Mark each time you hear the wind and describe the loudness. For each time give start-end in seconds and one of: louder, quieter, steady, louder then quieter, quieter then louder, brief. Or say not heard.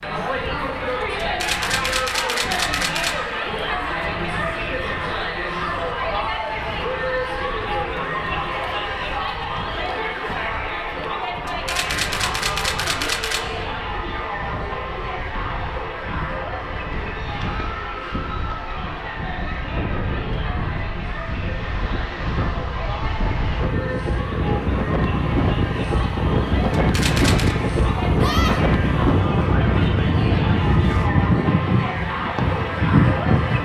0.2-33.5 louder.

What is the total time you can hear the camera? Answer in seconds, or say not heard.
5 s.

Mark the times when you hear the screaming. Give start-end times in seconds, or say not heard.
28.2-28.6.